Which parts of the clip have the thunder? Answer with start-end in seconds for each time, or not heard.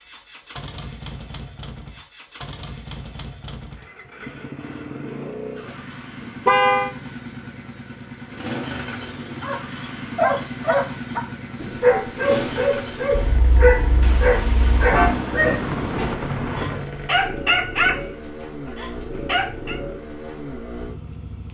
14.0-16.9.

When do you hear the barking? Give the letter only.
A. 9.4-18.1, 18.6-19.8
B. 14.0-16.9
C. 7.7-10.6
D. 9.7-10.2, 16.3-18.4
A.